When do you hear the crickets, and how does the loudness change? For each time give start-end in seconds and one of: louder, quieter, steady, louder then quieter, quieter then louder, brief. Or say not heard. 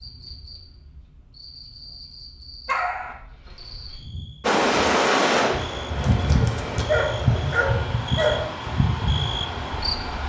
0.0-10.2 louder.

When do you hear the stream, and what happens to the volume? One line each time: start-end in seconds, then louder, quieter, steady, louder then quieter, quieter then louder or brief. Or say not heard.
4.4-10.2 quieter.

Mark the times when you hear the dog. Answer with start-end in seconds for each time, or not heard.
2.6-3.1, 6.0-8.4.